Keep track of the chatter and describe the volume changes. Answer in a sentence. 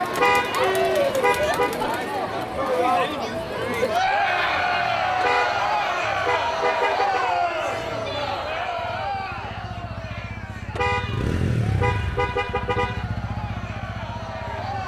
The loudness of the chatter goes down.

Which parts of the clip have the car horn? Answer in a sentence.
The car horn can be heard from 0.1 to 1.8 s, from 5.2 to 7.3 s and from 10.8 to 13.1 s.